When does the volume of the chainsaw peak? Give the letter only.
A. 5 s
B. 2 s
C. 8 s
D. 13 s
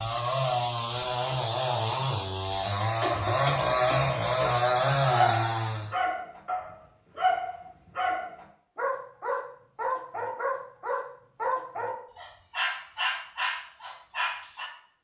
A.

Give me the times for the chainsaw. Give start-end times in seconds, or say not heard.
0.0-5.9.